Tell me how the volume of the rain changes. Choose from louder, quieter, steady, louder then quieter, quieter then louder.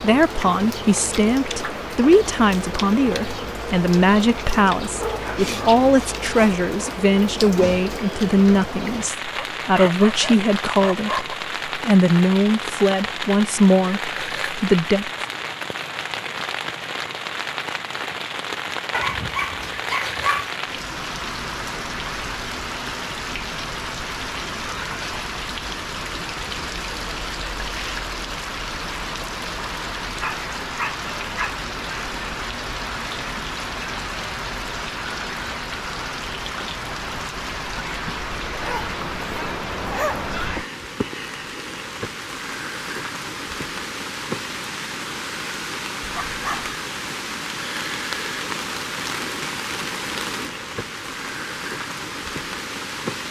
steady.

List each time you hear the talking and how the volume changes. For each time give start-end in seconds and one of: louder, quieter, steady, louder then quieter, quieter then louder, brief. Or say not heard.
0.0-15.1 steady.